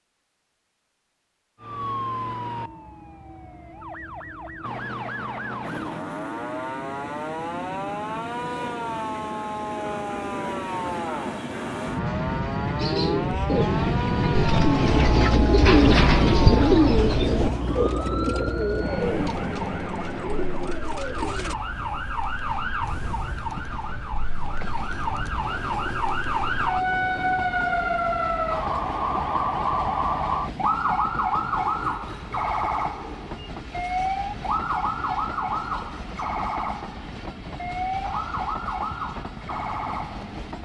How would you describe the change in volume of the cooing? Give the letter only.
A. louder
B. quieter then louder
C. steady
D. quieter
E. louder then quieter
E.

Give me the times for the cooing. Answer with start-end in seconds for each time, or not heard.
12.8-21.6.